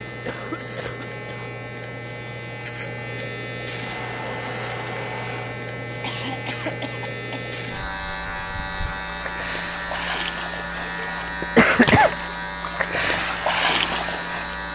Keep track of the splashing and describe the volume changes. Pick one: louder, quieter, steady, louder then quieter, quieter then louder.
quieter then louder.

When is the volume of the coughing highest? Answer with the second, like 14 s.
12 s.